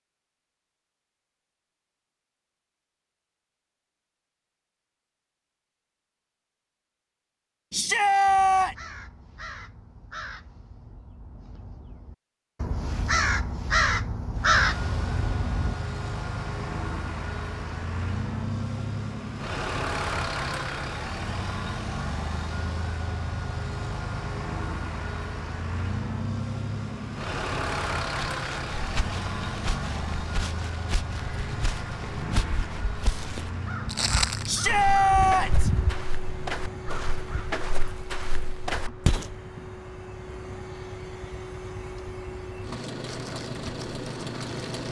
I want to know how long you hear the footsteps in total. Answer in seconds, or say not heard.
11 s.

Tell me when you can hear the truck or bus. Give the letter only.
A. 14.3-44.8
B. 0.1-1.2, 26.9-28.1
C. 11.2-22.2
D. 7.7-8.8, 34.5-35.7
A.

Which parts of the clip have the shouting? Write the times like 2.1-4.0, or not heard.
7.7-8.8, 34.5-35.7.